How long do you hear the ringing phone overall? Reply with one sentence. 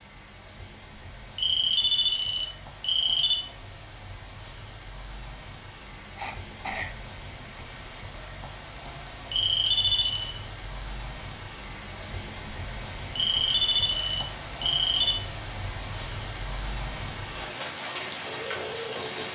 The ringing phone can be heard for 5 seconds in total.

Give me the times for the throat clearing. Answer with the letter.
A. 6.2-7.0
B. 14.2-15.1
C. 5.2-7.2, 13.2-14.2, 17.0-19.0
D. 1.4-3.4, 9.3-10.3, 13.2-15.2
A.